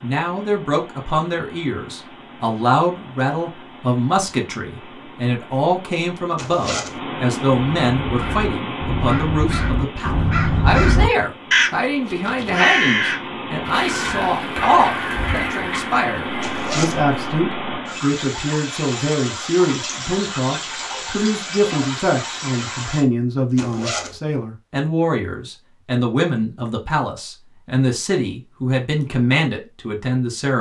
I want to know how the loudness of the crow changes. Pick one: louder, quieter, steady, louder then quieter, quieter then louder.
louder then quieter.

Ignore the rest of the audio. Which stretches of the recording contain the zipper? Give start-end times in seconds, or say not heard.
6.3-7.0, 16.4-17.1, 23.6-24.2.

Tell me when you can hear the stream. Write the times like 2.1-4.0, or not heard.
0.0-23.1.